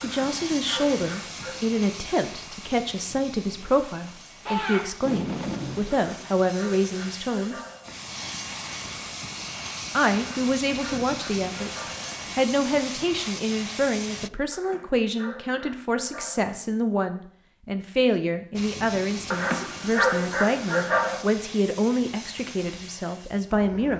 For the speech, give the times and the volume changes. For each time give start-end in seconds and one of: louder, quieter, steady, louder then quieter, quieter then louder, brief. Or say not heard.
0.0-7.5 steady
9.9-23.9 steady.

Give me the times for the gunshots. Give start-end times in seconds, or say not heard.
4.5-6.0.